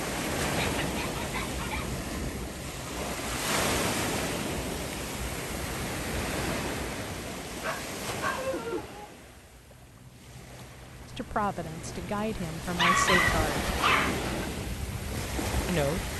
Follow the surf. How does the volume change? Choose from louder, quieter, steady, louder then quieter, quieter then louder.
quieter then louder.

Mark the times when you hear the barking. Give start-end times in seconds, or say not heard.
0.6-1.9, 7.6-9.1, 12.8-14.4.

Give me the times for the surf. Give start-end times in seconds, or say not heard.
0.0-16.1.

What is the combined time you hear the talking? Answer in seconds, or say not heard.
3 s.